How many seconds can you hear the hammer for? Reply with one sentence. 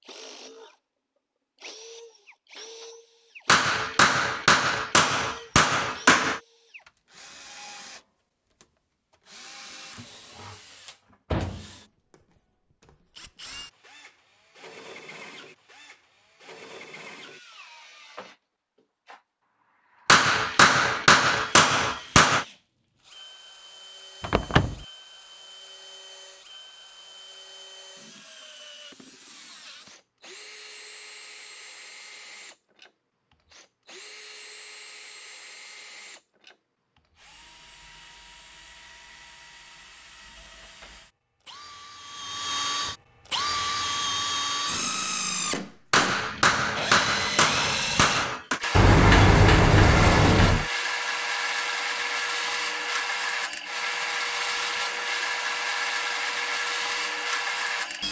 You can hear the hammer for 8 seconds altogether.